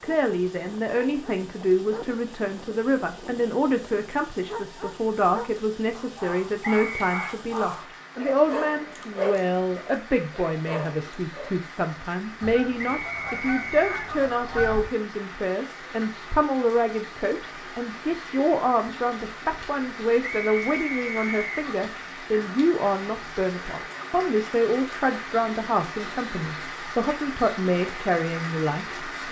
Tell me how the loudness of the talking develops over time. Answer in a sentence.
The volume of the talking stays about the same.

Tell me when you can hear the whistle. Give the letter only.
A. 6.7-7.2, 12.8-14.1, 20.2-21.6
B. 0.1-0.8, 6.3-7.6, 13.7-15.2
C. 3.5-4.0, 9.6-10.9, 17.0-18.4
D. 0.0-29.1
A.